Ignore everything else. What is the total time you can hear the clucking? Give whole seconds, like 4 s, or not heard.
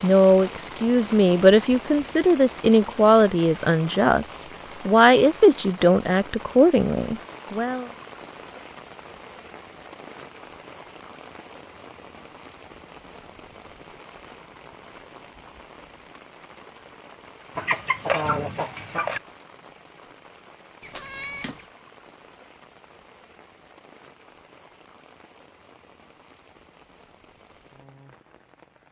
2 s.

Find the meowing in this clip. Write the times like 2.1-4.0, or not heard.
20.8-21.7.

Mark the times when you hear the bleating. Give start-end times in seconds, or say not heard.
not heard.